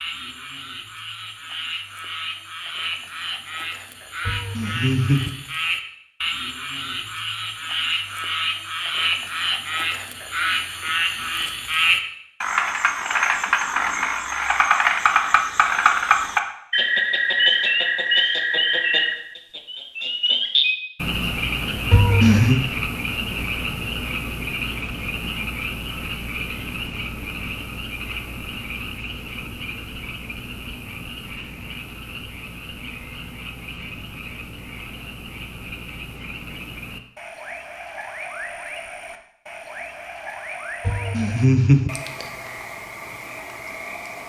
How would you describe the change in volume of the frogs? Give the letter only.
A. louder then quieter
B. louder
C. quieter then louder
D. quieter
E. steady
A.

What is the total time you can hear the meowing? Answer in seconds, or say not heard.
3 s.